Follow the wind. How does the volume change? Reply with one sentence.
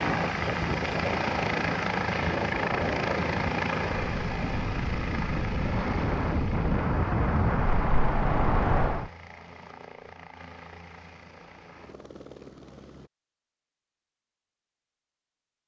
The loudness of the wind goes up.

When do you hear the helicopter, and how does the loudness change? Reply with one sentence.
You can hear the helicopter from 0.0 to 13.1 s, getting quieter.